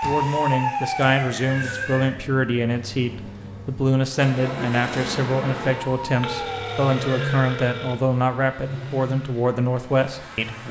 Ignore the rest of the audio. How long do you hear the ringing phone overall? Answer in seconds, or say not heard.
2 s.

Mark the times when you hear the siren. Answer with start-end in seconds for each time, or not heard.
0.0-2.2, 5.8-7.3.